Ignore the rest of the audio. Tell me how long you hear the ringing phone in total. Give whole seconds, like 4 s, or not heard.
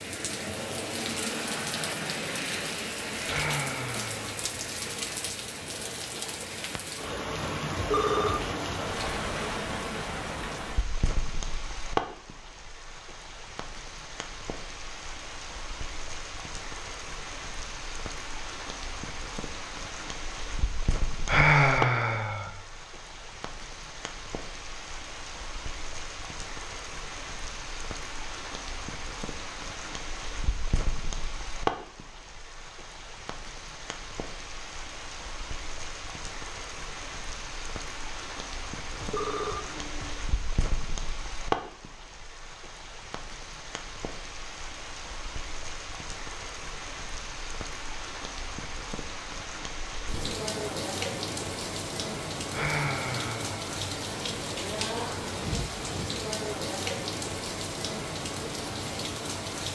2 s.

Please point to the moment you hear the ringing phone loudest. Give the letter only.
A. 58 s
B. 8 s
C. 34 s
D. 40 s
B.